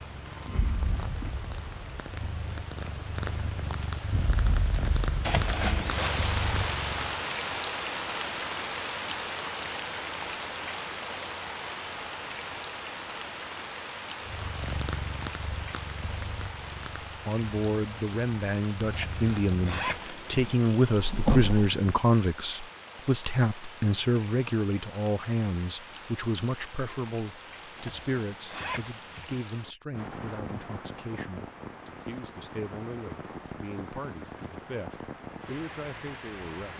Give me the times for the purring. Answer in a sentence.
The purring can be heard from 0.1 to 7.2 s and from 14.2 to 21.8 s.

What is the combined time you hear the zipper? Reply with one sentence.
The zipper can be heard for 4 seconds in total.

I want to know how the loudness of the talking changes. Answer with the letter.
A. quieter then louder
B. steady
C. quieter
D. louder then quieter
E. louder
C.